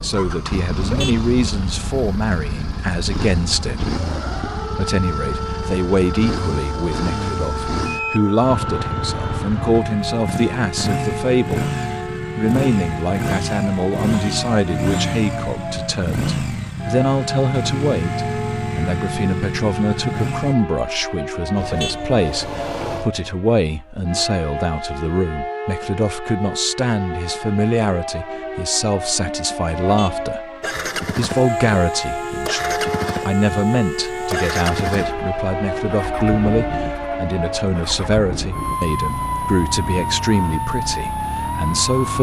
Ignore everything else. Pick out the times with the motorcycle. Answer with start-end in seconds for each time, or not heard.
0.0-20.6, 30.6-42.1.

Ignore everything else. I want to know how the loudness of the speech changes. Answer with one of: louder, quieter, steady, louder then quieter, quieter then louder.
steady.